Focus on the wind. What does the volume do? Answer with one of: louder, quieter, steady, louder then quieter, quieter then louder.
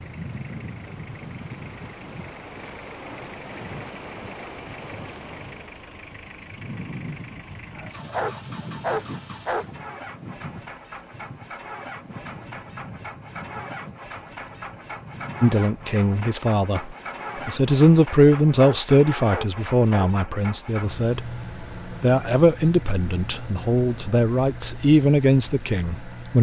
quieter.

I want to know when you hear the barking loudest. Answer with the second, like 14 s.
9 s.